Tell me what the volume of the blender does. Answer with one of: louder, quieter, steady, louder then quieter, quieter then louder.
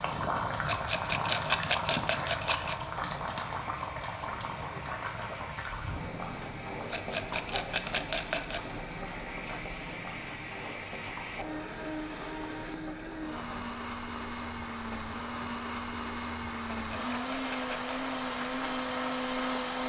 louder.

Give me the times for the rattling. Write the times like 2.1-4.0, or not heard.
0.7-2.8, 6.9-8.7, 16.7-17.9.